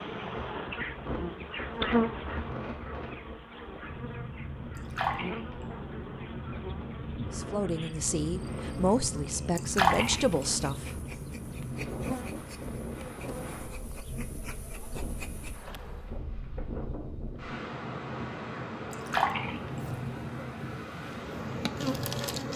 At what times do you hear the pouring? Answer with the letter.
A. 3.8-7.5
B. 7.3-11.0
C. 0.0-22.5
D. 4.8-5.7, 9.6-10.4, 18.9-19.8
D.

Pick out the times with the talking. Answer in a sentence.
The talking can be heard from 7.3 to 11.0 s.